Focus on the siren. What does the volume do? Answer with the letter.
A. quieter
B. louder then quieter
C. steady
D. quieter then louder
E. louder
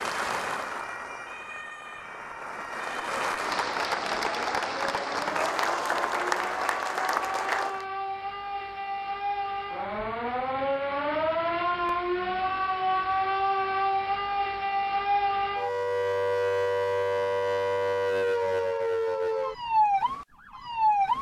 E.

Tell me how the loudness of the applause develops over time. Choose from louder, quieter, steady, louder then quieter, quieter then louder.
louder.